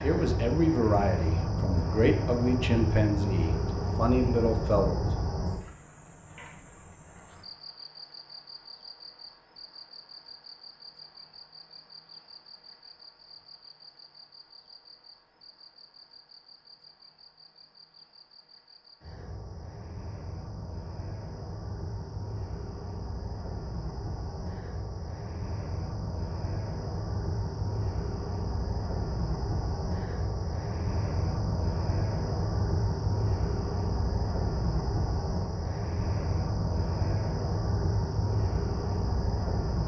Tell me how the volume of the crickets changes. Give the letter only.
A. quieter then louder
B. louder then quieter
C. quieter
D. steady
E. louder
A.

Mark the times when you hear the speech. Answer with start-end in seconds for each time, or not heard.
0.0-5.1.